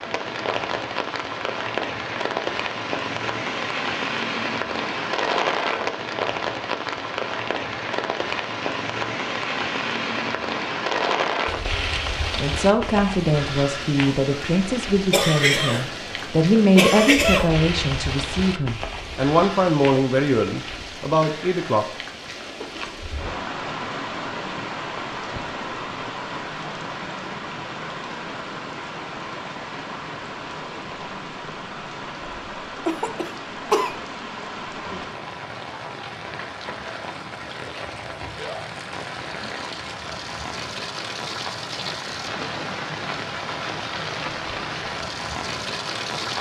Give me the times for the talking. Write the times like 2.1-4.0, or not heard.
12.4-21.9.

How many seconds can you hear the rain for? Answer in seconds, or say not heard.
46 s.